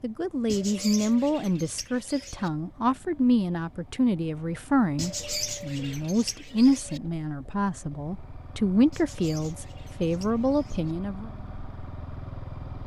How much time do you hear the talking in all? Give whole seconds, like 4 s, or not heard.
11 s.